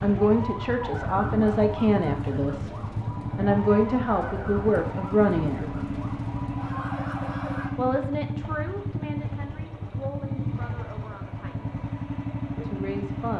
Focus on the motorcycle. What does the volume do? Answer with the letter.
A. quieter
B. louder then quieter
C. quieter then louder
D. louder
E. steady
E.